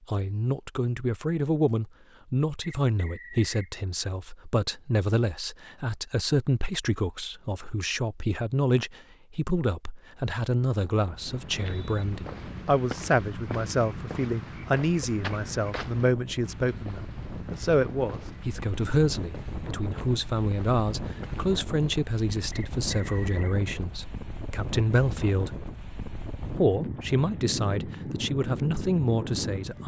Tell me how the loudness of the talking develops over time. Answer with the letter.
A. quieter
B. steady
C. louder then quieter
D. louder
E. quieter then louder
B.